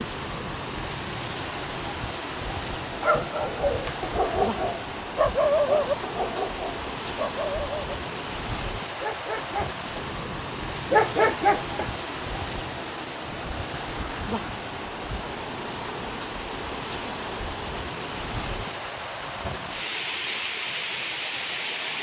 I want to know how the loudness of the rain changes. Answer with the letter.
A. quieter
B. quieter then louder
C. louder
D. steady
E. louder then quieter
D.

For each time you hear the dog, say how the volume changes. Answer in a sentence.
You can hear the dog from 2.8 to 8.0 s, getting louder then quieter; briefly from 9.0 to 10.1 s; and briefly from 10.9 to 11.9 s.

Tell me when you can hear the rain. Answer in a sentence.
You can hear the rain from 0.0 to 21.9 s.